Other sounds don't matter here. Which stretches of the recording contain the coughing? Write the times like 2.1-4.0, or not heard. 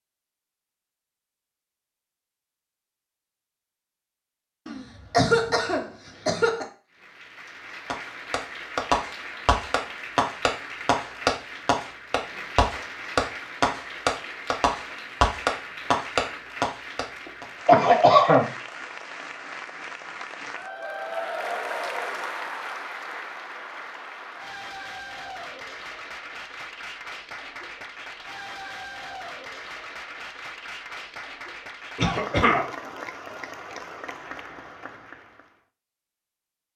4.7-6.7, 17.6-18.4, 31.9-32.6.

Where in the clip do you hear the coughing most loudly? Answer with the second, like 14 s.
18 s.